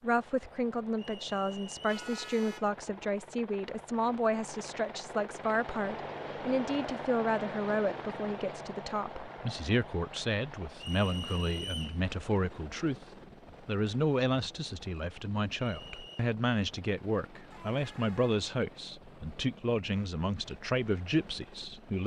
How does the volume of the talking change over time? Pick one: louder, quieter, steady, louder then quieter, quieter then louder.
steady.